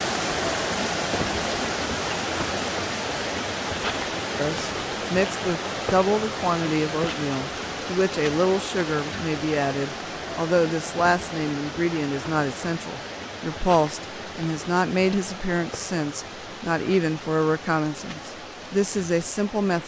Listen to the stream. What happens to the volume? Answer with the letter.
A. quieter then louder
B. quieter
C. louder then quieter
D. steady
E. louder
B.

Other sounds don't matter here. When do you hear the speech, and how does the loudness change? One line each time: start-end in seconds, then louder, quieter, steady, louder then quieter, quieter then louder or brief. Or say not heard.
4.3-19.8 steady.